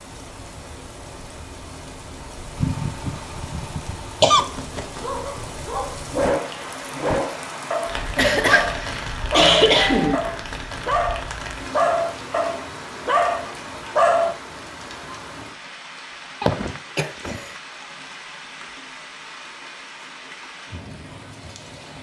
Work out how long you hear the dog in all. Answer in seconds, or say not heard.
9 s.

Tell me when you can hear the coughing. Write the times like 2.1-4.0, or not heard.
2.5-4.4, 8.2-10.2, 16.4-17.4.